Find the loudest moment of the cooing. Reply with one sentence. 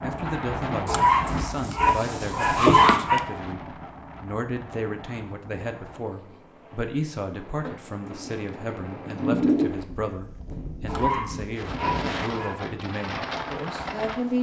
The volume of the cooing peaks at 9 seconds.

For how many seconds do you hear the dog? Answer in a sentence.
You can hear the dog for 4 seconds altogether.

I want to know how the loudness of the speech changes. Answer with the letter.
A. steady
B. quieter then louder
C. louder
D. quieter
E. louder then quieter
A.